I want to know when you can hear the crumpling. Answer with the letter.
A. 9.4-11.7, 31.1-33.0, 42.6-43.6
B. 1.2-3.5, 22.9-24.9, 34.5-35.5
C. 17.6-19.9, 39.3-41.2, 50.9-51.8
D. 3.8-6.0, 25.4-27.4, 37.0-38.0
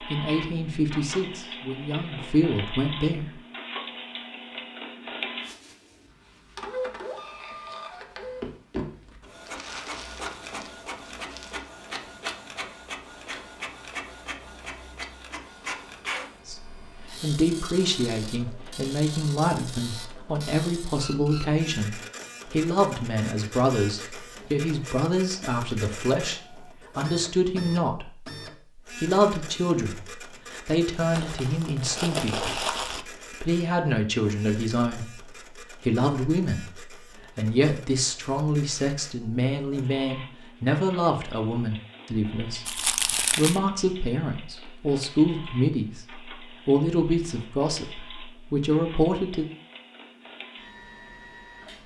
A.